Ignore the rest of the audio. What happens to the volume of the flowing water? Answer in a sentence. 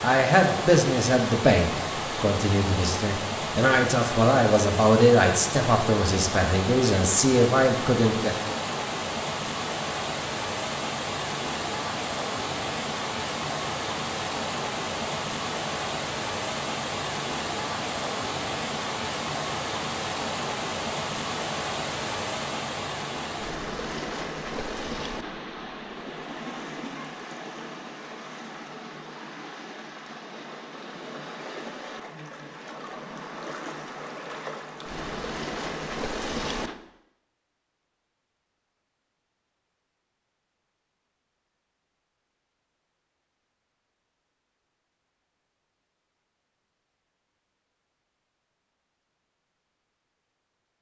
The loudness of the flowing water goes down.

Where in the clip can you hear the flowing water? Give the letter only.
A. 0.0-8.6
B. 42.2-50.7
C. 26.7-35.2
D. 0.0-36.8
D.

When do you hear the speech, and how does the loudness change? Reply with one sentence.
The speech can be heard from 0.0 to 8.6 s, getting quieter then louder.